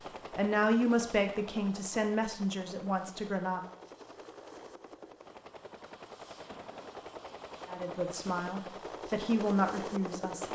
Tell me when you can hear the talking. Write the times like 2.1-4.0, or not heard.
0.3-3.6, 7.7-10.5.